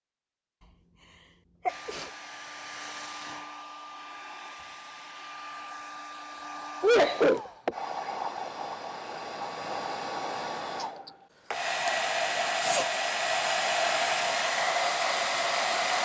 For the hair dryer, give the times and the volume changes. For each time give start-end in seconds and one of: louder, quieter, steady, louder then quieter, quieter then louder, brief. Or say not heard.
1.6-16.0 louder.